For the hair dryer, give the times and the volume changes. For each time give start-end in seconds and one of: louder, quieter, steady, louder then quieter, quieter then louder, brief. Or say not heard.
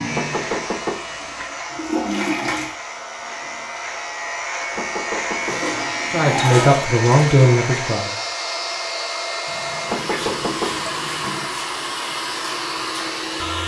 0.0-13.6 louder.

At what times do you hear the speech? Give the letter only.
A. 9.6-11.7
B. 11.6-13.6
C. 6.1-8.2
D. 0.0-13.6
C.